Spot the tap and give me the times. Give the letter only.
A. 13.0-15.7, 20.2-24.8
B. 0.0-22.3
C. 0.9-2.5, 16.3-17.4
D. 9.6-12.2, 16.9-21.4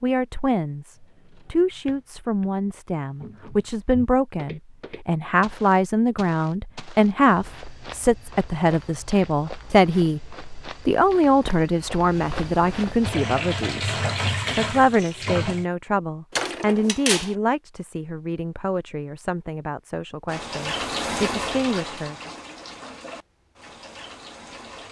A.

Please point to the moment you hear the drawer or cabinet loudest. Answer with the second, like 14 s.
17 s.